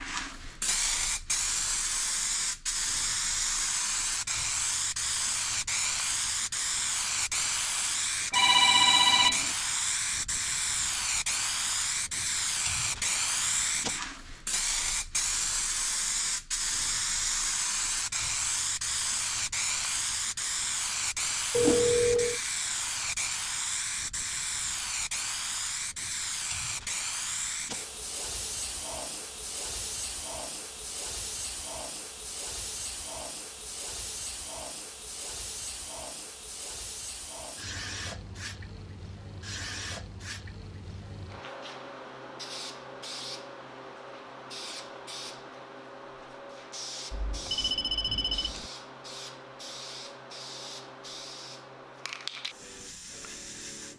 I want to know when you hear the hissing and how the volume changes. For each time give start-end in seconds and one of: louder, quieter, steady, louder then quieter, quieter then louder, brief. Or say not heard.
0.0-53.9 quieter.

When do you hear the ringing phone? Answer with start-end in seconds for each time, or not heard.
8.3-9.5, 21.5-22.4, 47.1-48.6.